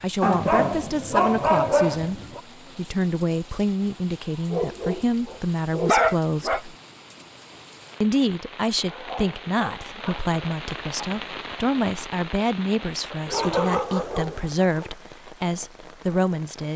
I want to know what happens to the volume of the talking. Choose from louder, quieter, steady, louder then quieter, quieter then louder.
steady.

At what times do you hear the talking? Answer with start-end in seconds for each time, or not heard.
0.0-6.7, 8.0-16.7.